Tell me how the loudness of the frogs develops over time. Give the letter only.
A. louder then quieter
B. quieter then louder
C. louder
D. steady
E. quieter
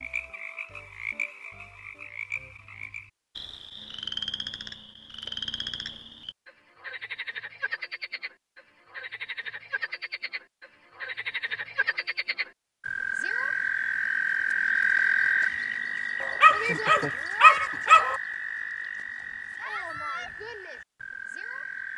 A.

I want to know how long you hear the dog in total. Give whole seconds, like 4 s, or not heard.
2 s.